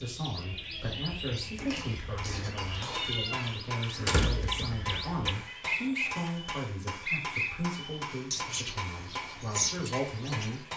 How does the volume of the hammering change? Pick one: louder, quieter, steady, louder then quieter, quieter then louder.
steady.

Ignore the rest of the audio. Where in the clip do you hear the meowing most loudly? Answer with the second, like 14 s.
3 s.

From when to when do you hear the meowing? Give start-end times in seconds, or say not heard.
1.6-3.5, 5.5-6.4.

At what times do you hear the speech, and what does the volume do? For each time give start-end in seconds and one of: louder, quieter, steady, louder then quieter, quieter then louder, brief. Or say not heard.
0.0-10.7 steady.